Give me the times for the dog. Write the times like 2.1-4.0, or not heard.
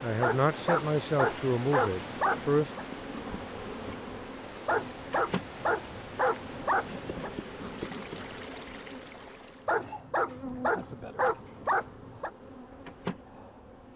0.2-2.9, 4.7-7.3, 9.7-12.3.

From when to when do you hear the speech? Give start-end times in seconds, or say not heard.
0.0-2.7.